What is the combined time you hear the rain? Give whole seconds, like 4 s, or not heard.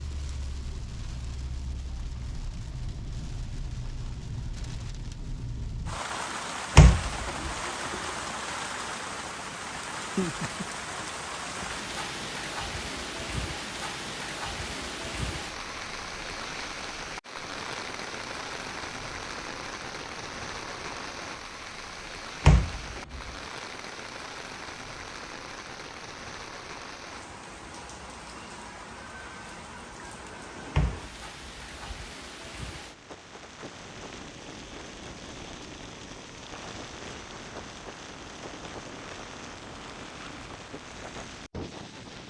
42 s.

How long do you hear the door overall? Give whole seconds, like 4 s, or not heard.
3 s.